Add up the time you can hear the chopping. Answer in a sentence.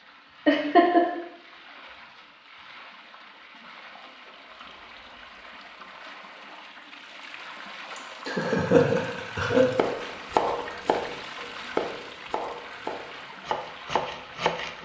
You can hear the chopping for 5 seconds altogether.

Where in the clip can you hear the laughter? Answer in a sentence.
The laughter can be heard from 0.5 to 1.1 s and from 8.2 to 9.7 s.